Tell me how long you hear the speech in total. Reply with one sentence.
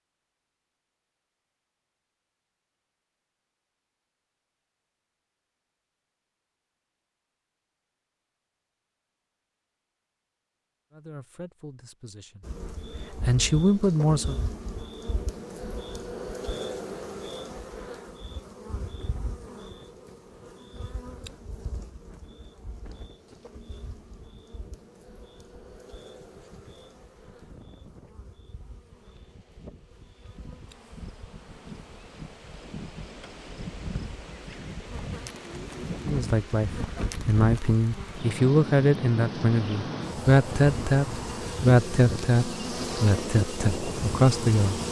The speech can be heard for 12 seconds in total.